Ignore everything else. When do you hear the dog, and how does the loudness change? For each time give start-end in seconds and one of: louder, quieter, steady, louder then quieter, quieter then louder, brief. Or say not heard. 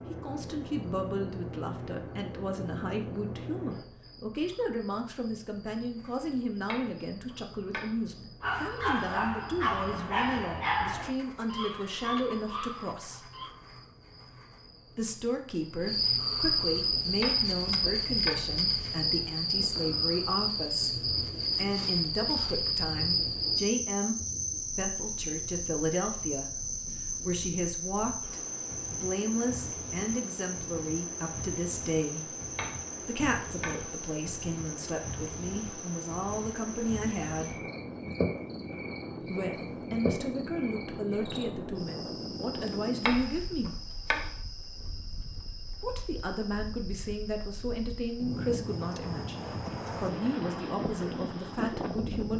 8.4-13.5 quieter.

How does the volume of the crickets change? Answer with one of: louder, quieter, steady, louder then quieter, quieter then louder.
louder then quieter.